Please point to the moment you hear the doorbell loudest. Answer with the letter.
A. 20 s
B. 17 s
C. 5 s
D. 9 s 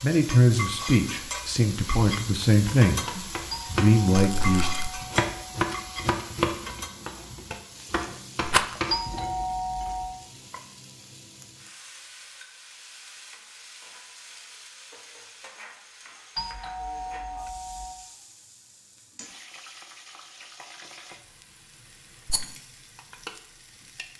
D.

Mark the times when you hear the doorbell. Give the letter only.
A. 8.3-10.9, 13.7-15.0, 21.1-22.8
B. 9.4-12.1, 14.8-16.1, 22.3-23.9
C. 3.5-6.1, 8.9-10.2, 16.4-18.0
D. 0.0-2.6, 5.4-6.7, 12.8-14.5
C.